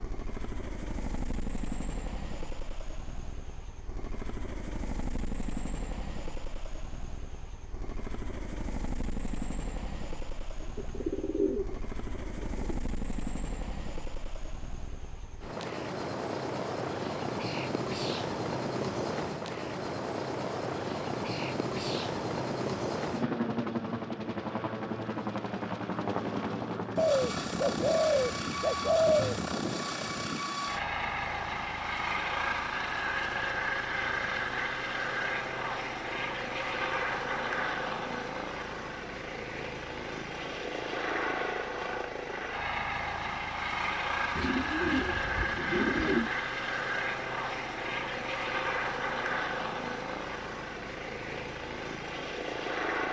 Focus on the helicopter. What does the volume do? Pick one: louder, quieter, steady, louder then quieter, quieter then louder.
louder.